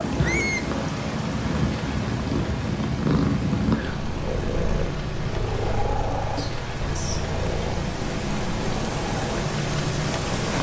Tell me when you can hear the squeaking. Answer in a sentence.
The squeaking can be heard from 0.2 to 0.7 s and from 6.3 to 7.3 s.